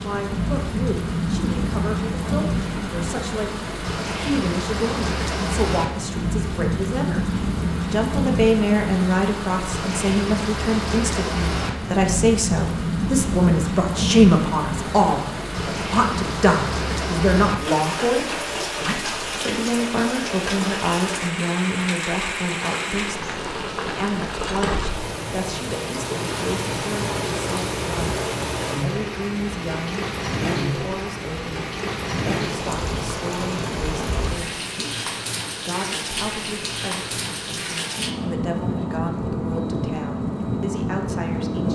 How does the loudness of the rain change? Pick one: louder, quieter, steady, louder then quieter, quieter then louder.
steady.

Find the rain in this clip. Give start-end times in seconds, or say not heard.
0.0-41.7.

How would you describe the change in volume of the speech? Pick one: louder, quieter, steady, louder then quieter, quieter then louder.
louder then quieter.